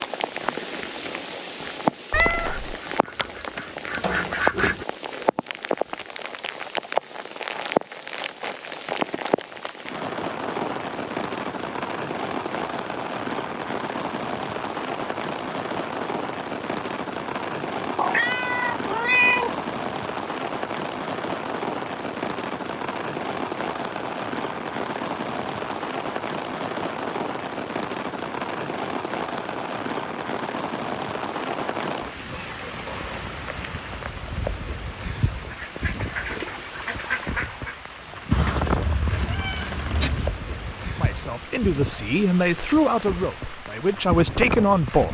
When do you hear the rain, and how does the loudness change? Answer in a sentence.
The rain can be heard from 0.0 to 45.0 s, at a steady volume.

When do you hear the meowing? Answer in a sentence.
You can hear the meowing from 2.1 to 2.8 s, from 17.9 to 19.5 s and from 38.3 to 40.3 s.